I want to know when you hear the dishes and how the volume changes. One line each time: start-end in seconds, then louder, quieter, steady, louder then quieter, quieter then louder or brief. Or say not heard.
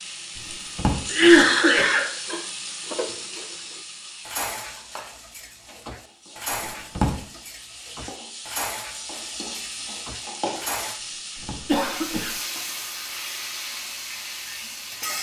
2.2-11.0 quieter.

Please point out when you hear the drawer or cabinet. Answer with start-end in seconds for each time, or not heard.
0.3-1.0, 6.5-7.2, 11.0-11.7.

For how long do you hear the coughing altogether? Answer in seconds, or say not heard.
2 s.